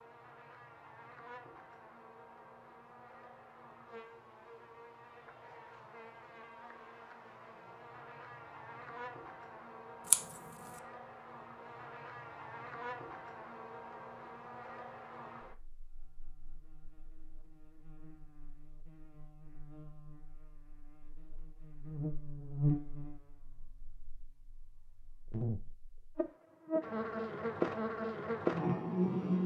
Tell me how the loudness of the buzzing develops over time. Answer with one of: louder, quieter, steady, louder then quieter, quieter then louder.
louder.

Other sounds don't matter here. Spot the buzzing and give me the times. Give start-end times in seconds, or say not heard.
0.0-29.4.